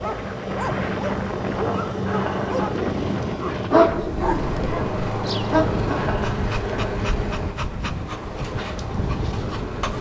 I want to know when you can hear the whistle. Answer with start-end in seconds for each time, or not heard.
not heard.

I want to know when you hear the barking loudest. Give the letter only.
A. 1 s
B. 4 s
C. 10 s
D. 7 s
B.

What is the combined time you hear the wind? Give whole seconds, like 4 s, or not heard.
10 s.